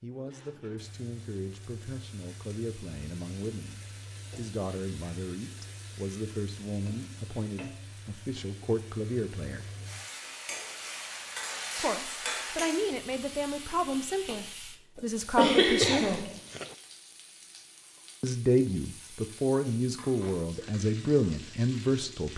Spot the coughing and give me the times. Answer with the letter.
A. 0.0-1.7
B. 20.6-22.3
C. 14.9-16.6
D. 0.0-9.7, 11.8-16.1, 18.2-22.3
C.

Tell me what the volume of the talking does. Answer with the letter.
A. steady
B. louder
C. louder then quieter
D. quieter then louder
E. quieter
B.